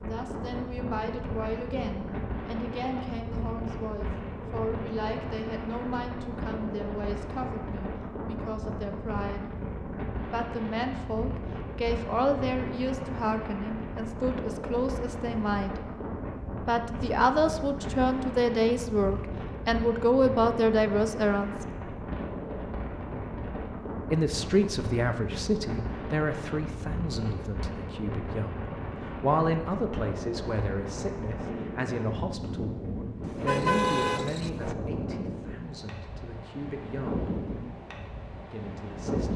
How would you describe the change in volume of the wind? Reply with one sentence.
The loudness of the wind stays about the same.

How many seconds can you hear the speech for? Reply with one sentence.
You can hear the speech for 34 seconds altogether.